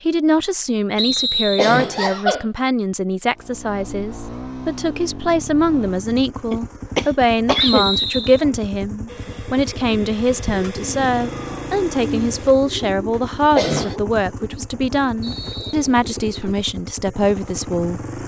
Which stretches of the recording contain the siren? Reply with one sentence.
You can't hear the siren here.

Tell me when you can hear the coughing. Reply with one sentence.
The coughing can be heard from 1.1 to 2.5 s, from 6.5 to 7.9 s and from 13.1 to 13.9 s.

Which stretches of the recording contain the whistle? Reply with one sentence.
The whistle can be heard from 0.9 to 1.8 s, from 7.6 to 8.4 s and from 15.2 to 15.8 s.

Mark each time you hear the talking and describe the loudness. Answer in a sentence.
You can hear the talking from 0.1 to 18.2 s, at a steady volume.